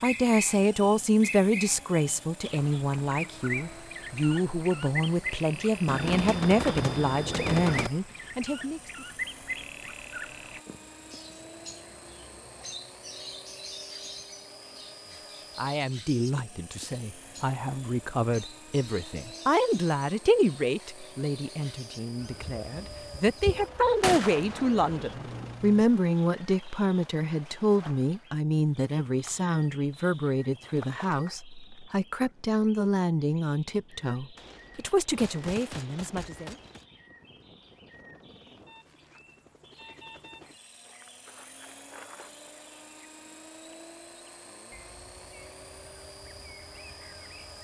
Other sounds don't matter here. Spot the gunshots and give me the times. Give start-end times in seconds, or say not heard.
5.8-7.9, 24.0-25.6, 34.4-36.9.